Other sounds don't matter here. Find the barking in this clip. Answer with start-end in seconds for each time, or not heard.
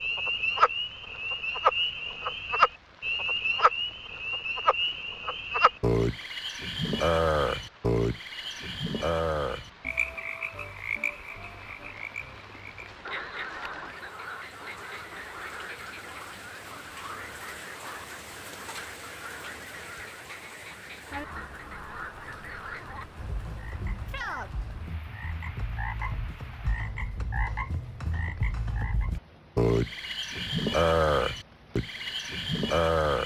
not heard.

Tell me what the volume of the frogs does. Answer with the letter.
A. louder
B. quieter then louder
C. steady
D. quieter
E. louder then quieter
B.